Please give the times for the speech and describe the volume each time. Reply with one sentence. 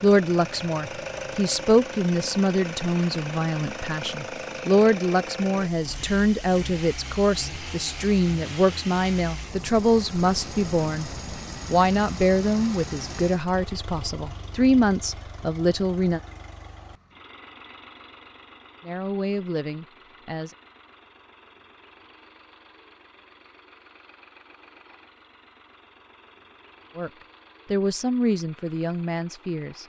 The speech can be heard from 0.0 to 16.2 s, at a steady volume; briefly from 18.8 to 20.6 s; and briefly from 26.9 to 29.8 s.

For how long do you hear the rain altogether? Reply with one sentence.
The rain can't be heard in this clip.